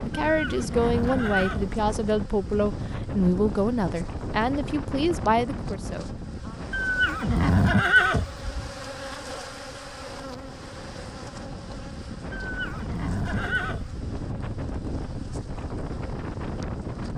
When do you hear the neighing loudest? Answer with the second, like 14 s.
8 s.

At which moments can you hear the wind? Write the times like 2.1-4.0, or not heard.
0.0-17.1.